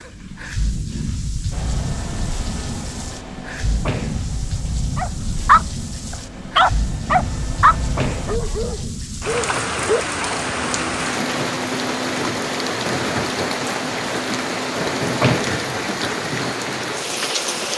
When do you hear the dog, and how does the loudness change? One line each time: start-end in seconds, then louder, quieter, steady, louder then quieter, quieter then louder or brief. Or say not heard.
5.0-10.3 quieter.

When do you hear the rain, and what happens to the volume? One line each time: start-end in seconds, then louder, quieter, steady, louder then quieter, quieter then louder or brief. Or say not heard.
0.0-17.7 louder.